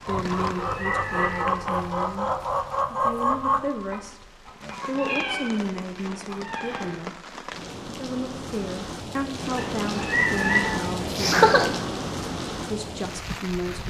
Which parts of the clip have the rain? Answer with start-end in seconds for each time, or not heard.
0.0-13.8.